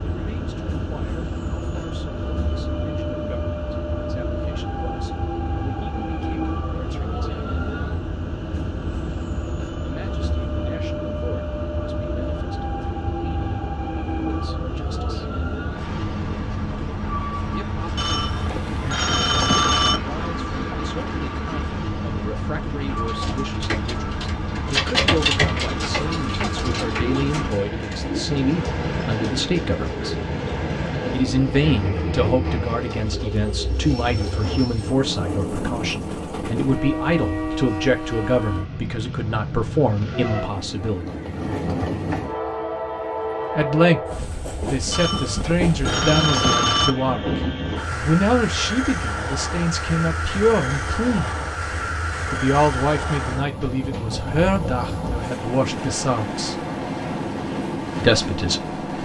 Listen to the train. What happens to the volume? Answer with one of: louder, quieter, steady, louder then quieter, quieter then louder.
steady.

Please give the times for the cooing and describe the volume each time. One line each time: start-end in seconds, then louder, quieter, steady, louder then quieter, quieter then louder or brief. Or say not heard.
22.8-34.7 quieter.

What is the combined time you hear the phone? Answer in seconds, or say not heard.
4 s.